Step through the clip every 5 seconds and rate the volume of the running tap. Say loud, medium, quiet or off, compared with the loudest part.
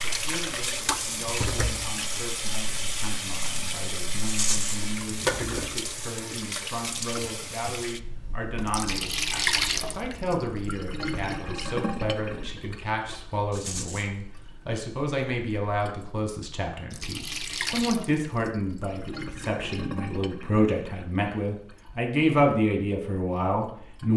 loud, loud, medium, medium, quiet.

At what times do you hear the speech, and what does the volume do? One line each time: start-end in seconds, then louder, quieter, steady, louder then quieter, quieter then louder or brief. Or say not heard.
0.0-24.1 louder.